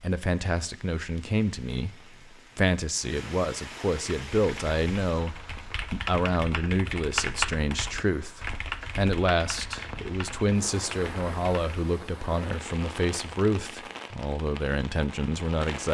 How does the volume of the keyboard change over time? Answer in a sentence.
The volume of the keyboard goes up, then down.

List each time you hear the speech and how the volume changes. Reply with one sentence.
The speech can be heard from 0.0 to 15.9 s, at a steady volume.